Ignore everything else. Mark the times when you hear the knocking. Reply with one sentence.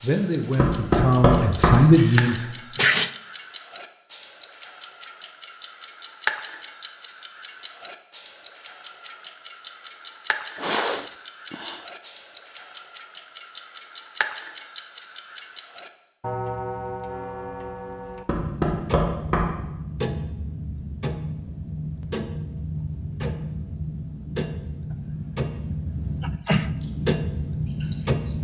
You can hear the knocking from 0.6 to 1.9 s and from 18.2 to 19.6 s.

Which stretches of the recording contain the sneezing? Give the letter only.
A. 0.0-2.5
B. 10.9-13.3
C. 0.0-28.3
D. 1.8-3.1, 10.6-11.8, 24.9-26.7
D.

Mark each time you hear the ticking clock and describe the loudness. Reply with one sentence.
You can hear the ticking clock from 0.0 to 28.3 s, getting louder.